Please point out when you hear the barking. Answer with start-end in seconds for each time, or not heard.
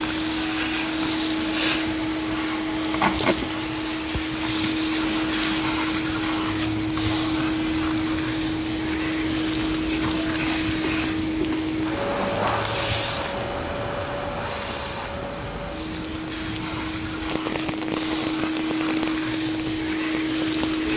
not heard.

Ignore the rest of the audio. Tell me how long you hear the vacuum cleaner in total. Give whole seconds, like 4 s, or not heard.
21 s.